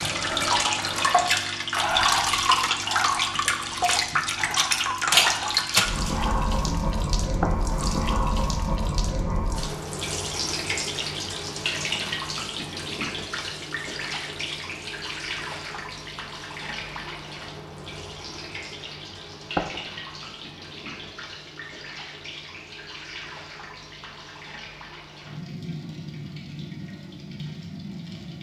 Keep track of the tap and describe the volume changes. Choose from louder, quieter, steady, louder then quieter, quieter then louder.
quieter.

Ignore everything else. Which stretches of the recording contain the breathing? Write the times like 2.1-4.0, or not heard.
0.0-7.0.